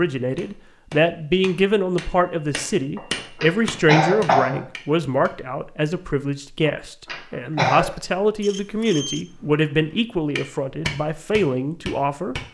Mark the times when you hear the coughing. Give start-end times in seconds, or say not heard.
3.0-4.6, 6.7-7.8.